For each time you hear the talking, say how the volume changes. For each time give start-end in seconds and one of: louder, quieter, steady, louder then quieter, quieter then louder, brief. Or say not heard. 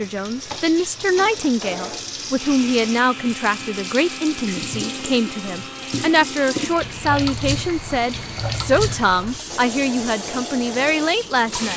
0.0-11.7 steady.